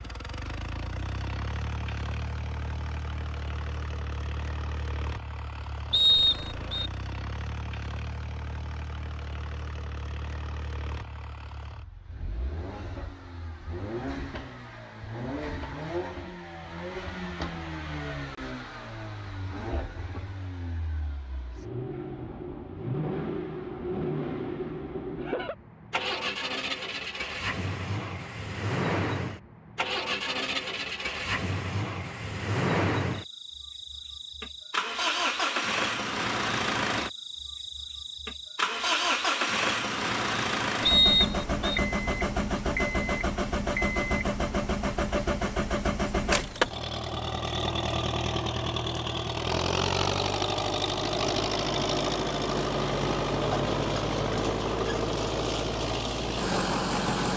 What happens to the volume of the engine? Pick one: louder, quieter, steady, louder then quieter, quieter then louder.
louder.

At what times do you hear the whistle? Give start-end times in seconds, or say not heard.
5.9-6.9, 40.9-41.8.